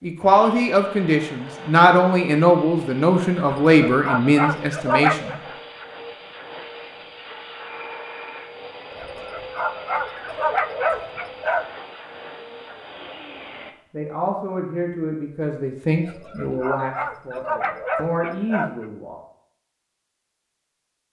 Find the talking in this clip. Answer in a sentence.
You can hear the talking from 0.0 to 5.3 s and from 13.9 to 19.1 s.